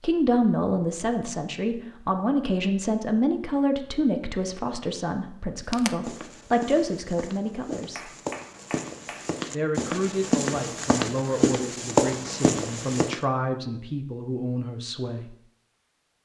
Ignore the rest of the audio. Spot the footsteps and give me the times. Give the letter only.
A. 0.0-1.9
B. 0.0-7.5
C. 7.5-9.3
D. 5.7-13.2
D.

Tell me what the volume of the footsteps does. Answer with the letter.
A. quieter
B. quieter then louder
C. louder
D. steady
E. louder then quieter
C.